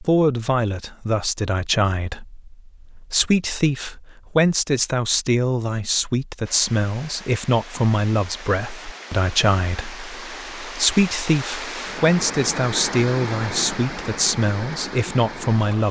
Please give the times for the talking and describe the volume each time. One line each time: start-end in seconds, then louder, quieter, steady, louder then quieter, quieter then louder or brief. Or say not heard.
0.0-15.8 steady.